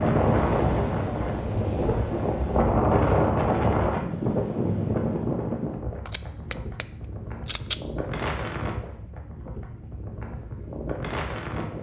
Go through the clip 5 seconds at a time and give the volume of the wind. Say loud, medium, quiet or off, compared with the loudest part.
loud, medium, medium.